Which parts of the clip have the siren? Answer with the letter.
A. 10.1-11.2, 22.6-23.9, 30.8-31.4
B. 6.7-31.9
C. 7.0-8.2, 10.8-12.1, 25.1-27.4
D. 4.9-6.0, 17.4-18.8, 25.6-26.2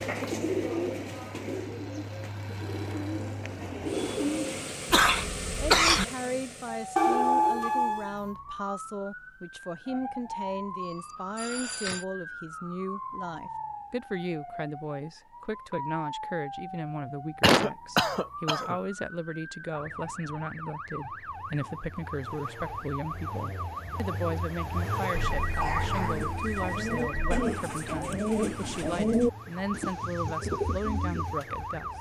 B.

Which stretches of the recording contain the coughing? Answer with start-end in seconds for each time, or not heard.
4.9-6.0, 17.4-18.8, 25.6-26.2.